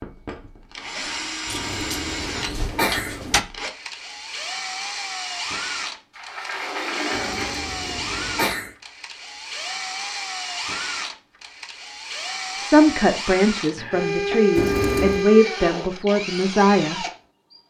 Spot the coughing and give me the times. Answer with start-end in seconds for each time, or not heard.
1.5-3.4, 7.1-8.7, 14.6-15.2.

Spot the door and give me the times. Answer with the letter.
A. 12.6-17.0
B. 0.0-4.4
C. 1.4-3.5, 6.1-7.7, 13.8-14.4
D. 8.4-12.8
C.